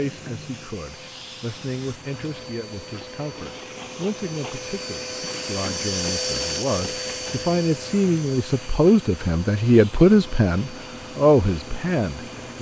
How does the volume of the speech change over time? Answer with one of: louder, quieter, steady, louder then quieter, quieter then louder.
louder.